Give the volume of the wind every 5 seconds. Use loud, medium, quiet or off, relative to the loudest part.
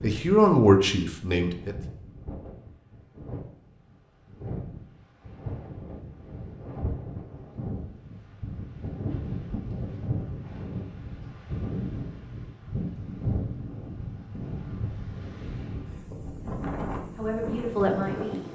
medium, loud, loud, loud.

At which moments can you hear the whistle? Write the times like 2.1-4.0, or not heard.
not heard.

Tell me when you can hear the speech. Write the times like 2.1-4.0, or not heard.
0.0-1.8, 16.9-18.4.